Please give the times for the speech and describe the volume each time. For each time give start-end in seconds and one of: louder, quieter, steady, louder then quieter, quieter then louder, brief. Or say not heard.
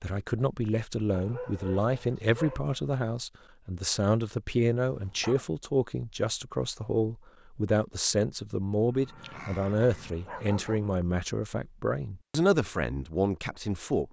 0.0-14.0 steady.